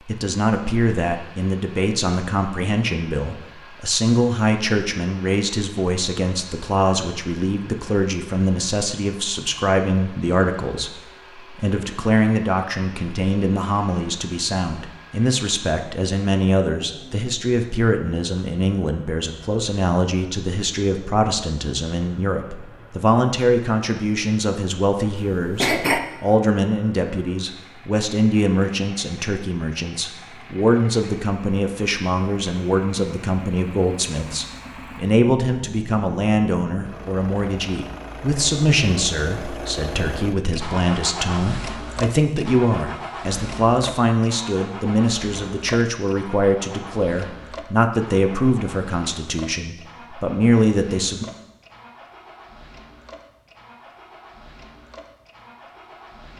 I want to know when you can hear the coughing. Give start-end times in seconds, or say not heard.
25.1-26.0.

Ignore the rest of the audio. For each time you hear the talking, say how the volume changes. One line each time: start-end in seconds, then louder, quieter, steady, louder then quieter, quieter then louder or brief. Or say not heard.
0.1-51.2 steady.